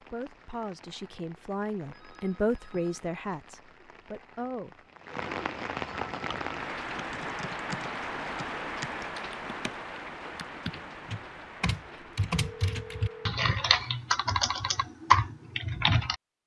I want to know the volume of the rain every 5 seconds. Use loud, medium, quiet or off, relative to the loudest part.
quiet, loud, medium, off.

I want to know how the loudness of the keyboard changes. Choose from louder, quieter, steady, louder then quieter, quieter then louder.
louder.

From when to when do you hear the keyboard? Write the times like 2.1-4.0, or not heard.
6.1-16.1.